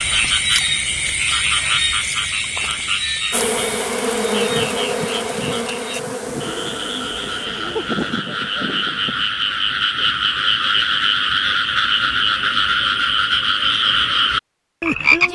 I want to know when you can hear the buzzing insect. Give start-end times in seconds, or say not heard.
3.3-9.3.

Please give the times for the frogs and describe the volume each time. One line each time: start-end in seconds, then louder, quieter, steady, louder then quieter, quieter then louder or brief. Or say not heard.
0.0-15.3 quieter then louder.